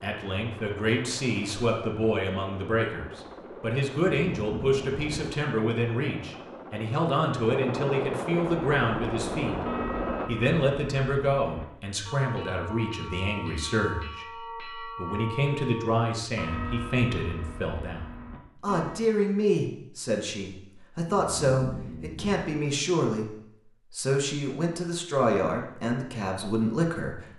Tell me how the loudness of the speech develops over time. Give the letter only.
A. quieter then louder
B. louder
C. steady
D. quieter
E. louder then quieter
C.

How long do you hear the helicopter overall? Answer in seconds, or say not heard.
10 s.